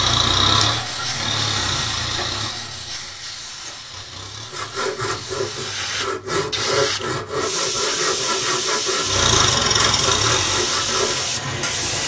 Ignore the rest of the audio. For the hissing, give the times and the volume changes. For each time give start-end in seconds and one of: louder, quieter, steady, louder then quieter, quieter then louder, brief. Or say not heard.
0.0-12.0 quieter then louder.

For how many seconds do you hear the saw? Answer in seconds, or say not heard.
7 s.